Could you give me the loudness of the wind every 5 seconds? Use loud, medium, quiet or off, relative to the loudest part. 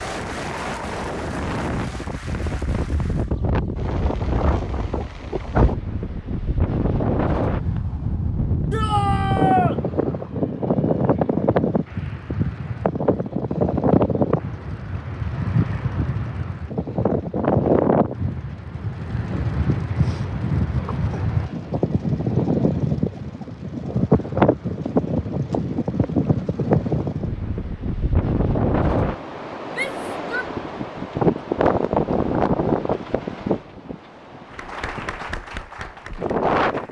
medium, loud, loud, loud, loud, loud, loud, loud.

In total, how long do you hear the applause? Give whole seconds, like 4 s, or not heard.
6 s.